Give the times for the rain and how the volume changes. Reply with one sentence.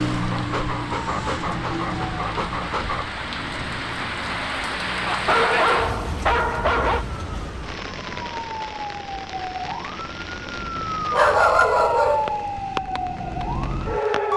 You can hear the rain from 0.0 to 14.3 s, getting louder then quieter.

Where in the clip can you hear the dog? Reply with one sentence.
The dog can be heard from 0.3 to 3.0 s, from 5.0 to 7.0 s and from 11.1 to 12.4 s.